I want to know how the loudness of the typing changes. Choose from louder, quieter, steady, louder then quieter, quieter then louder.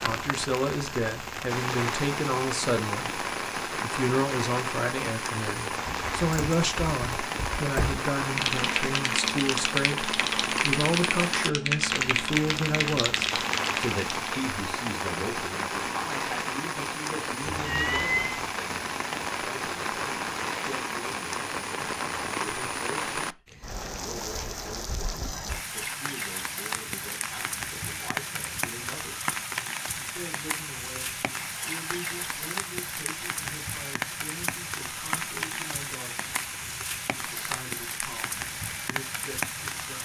louder.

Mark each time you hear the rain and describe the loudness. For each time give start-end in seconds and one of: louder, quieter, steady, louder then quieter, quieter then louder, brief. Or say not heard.
0.0-40.0 steady.